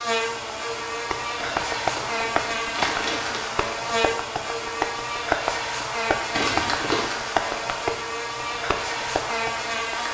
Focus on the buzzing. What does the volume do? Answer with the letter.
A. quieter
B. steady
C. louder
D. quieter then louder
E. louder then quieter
B.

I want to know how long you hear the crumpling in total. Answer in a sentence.
The crumpling can be heard for 3 seconds in total.